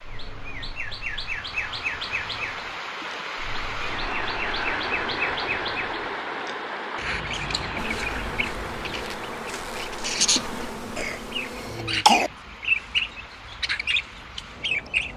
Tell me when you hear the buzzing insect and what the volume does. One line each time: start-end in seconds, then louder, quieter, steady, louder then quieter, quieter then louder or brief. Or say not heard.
7.8-12.1 steady.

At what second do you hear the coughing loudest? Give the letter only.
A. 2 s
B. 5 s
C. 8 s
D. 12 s
D.